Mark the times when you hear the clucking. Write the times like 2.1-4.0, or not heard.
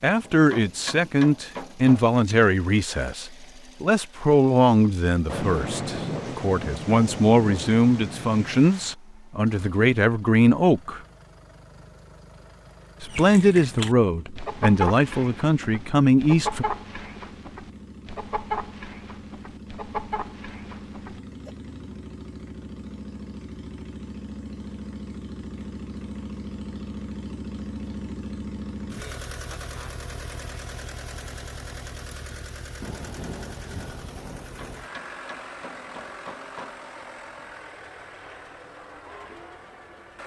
13.1-21.5.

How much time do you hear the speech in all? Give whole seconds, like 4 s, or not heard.
15 s.